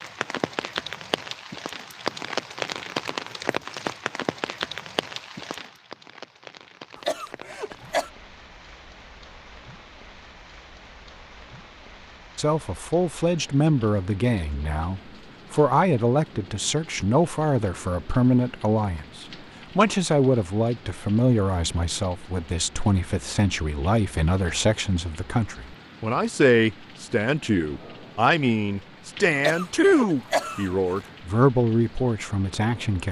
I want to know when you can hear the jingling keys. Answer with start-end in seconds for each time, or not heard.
not heard.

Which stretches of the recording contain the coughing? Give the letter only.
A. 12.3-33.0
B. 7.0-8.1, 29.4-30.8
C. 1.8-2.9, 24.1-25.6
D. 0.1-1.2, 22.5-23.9
B.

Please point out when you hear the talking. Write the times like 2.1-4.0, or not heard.
12.3-33.0.